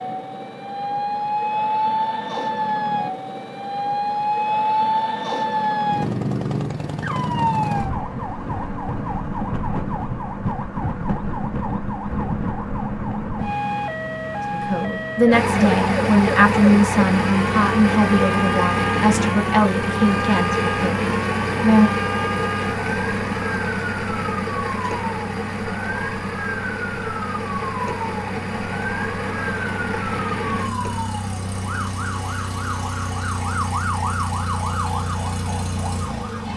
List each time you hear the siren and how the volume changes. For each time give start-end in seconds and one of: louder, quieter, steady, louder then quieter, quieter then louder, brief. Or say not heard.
0.0-36.5 quieter.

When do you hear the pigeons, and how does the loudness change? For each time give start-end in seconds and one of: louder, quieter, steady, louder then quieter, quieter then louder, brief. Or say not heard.
not heard.